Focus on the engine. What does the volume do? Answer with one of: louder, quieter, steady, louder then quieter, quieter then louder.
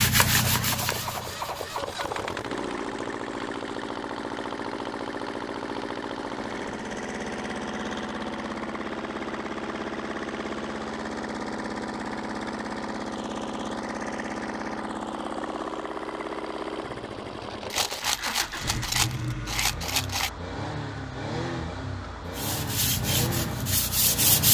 steady.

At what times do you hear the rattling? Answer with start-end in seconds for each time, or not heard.
17.7-20.3.